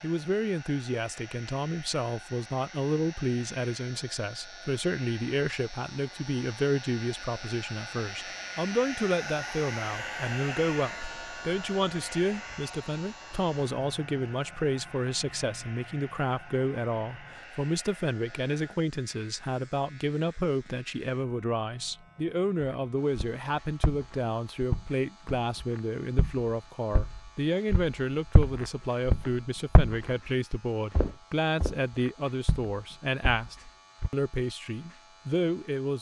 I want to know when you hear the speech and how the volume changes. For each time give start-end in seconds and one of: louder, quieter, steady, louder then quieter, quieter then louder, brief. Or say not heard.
0.0-35.9 steady.